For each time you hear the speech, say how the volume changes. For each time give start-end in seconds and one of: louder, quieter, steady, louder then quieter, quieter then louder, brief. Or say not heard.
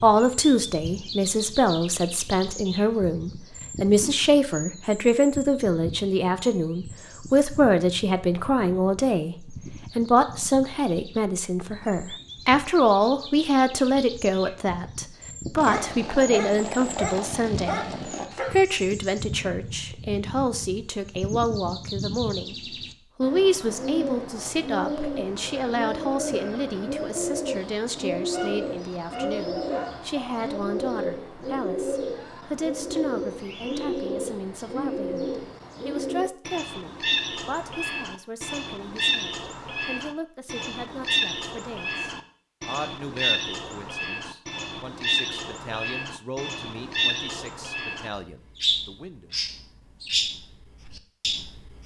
0.0-17.8 steady
18.5-49.4 quieter.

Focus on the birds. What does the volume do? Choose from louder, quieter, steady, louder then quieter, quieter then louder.
louder.